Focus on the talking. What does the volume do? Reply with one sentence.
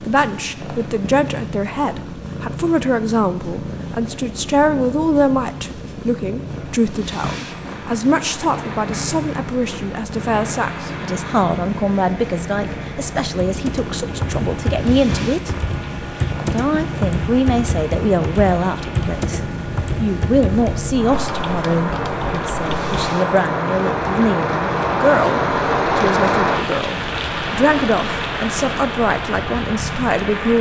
The loudness of the talking stays about the same.